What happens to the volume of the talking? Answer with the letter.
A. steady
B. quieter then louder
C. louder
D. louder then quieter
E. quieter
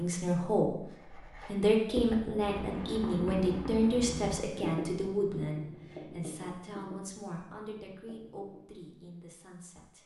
E.